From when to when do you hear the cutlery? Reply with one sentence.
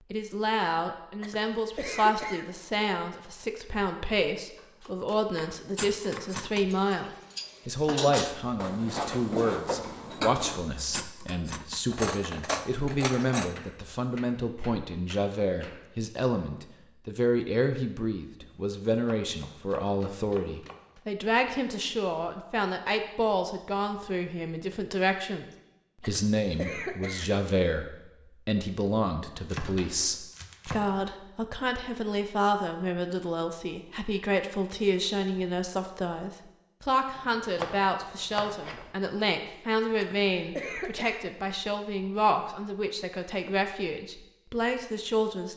The cutlery can be heard from 5.8 to 13.6 s.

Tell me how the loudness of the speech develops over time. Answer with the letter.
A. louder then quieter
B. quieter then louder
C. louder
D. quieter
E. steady
E.